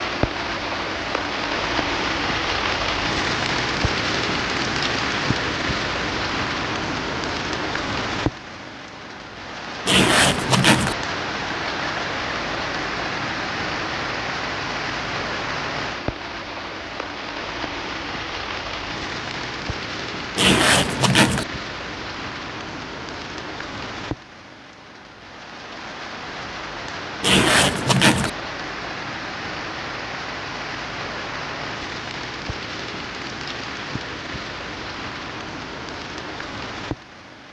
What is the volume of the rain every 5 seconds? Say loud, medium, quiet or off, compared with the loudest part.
loud, loud, loud, medium, medium, medium, medium, medium.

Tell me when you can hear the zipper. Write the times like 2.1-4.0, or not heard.
9.8-10.9, 20.4-21.4, 27.2-28.3.